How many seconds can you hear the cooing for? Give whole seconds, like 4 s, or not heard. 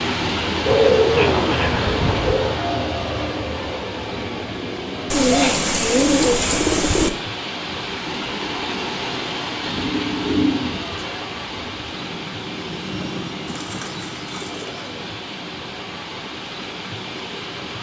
7 s.